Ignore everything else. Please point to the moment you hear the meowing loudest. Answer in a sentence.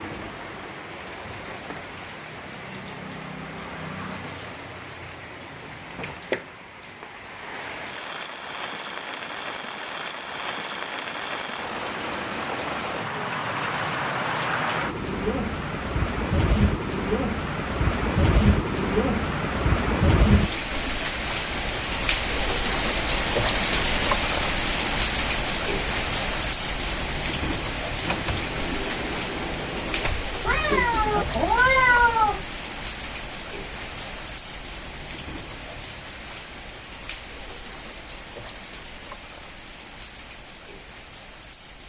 The loudest moment of the meowing is at 32 seconds.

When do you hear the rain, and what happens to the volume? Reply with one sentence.
The rain can be heard from 0.0 to 41.8 s, getting louder then quieter.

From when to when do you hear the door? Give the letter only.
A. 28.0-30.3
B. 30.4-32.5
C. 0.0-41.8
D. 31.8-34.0
A.